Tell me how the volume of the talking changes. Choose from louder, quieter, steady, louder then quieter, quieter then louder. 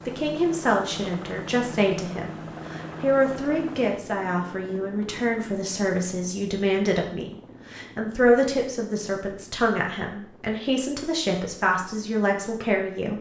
steady.